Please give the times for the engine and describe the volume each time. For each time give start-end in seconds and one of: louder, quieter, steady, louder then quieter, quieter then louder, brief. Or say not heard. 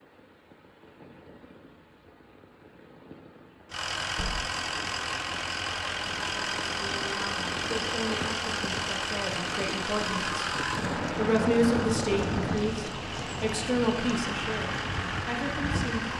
3.7-16.1 steady.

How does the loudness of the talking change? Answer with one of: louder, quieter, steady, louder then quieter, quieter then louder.
louder then quieter.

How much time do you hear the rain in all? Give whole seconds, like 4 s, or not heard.
16 s.